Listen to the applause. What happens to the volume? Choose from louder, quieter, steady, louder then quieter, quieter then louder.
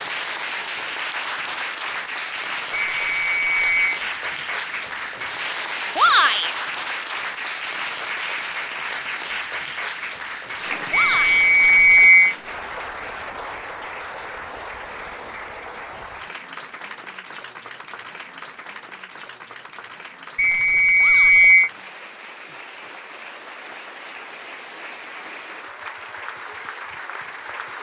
quieter.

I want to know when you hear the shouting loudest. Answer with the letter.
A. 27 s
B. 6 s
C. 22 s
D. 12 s
B.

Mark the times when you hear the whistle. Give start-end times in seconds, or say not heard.
2.7-4.0, 10.9-12.3, 20.4-21.7.